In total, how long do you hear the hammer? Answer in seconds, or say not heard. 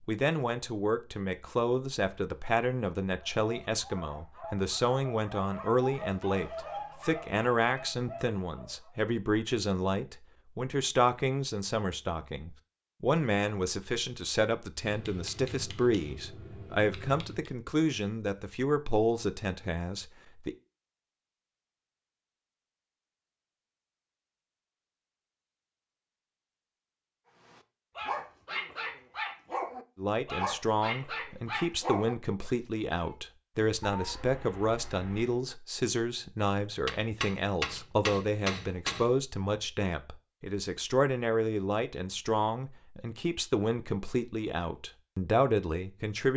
5 s.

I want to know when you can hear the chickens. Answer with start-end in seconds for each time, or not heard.
not heard.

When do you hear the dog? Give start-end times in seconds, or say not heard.
3.2-8.9, 27.4-33.1.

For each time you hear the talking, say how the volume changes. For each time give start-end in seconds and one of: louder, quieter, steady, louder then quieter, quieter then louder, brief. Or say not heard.
0.1-20.6 steady
29.9-46.3 steady.